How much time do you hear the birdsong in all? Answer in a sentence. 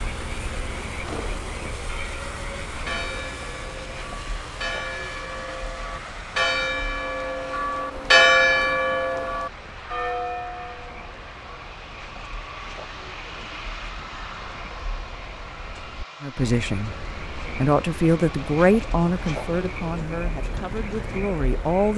You can't hear the birdsong here.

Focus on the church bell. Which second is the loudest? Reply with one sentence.
The loudest moment of the church bell is at 8 seconds.